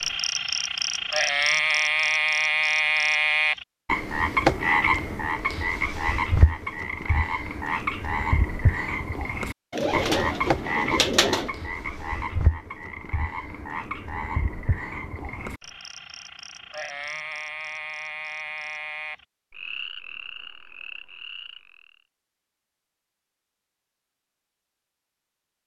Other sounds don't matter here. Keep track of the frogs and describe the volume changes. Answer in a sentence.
The loudness of the frogs goes down.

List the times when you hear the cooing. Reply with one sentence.
You can hear the cooing from 9.7 to 11.5 s.